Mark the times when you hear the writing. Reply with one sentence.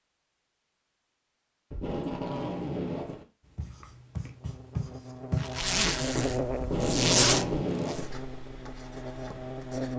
The writing can be heard from 3.5 to 9.9 s.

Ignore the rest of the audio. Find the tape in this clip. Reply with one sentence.
The tape can be heard from 1.7 to 3.2 s and from 6.6 to 8.2 s.